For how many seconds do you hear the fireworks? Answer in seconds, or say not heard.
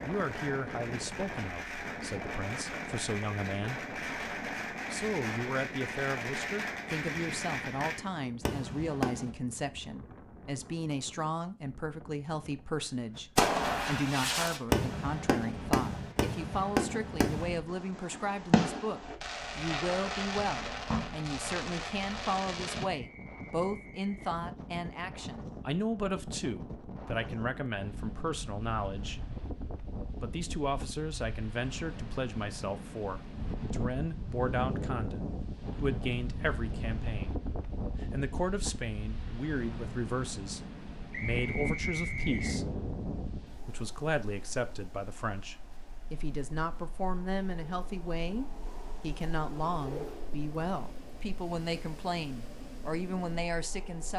19 s.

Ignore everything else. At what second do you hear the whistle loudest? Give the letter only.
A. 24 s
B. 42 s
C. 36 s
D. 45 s
B.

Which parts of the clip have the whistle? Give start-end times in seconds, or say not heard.
22.9-24.4, 41.1-42.6.